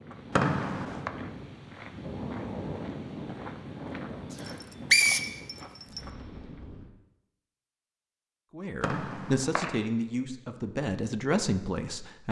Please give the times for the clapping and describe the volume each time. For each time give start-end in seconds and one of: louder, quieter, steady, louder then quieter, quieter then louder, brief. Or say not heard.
not heard.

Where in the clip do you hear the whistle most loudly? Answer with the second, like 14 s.
5 s.